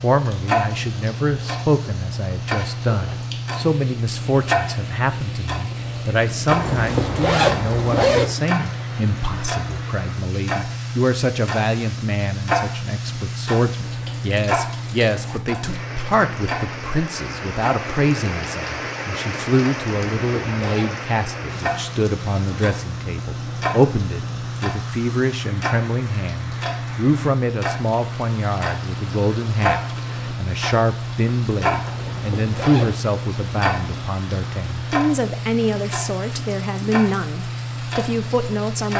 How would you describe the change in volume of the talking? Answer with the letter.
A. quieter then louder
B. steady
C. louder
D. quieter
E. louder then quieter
B.